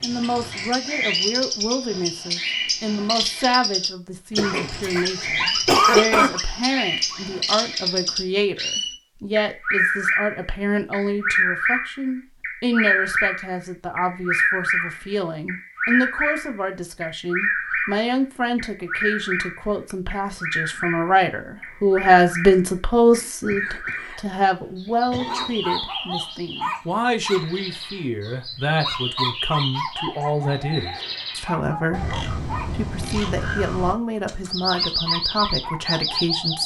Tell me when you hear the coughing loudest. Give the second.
6 s.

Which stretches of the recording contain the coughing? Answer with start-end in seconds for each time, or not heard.
4.3-6.3, 23.1-24.2, 25.1-25.6.